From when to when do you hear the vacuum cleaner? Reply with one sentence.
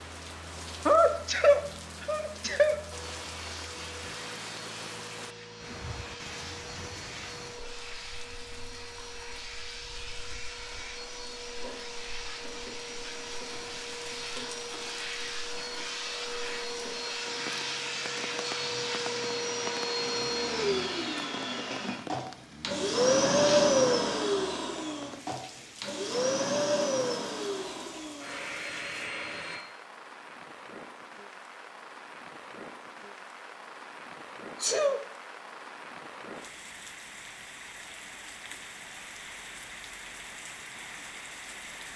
You can hear the vacuum cleaner from 2.9 to 29.6 s.